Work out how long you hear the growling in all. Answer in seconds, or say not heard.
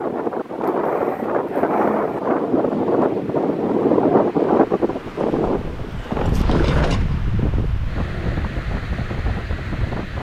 2 s.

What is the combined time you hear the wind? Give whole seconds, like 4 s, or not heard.
10 s.